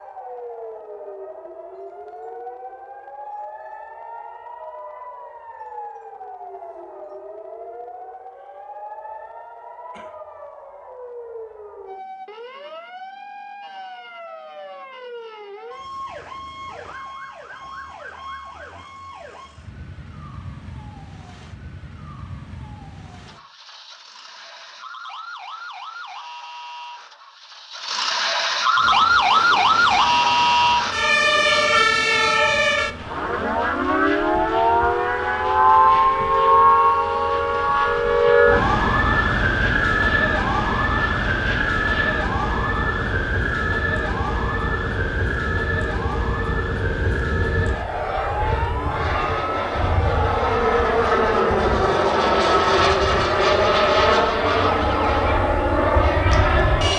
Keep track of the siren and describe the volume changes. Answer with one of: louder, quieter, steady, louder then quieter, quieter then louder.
louder then quieter.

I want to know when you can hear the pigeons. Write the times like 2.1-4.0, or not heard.
not heard.